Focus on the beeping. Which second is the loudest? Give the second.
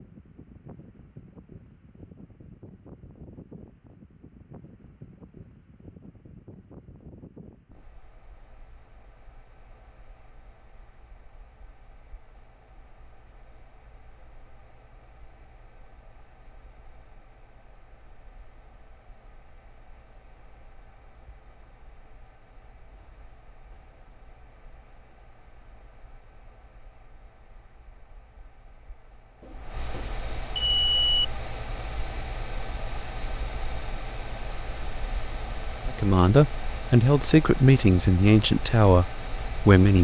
31 s.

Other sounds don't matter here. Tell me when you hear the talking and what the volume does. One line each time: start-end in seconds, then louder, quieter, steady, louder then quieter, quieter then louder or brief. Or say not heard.
35.9-39.9 steady.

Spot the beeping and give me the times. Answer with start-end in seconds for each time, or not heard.
29.4-31.2.